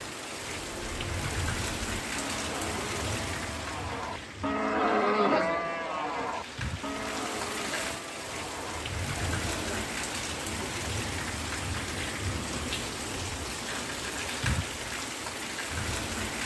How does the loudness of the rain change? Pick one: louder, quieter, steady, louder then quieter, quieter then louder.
quieter then louder.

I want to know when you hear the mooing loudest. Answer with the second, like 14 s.
5 s.